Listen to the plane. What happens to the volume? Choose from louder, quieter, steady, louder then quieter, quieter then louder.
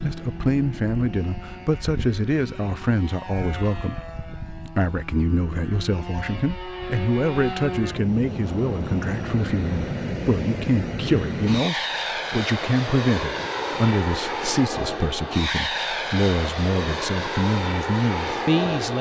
louder.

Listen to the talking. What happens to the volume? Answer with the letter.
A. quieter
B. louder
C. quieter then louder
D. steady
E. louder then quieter
D.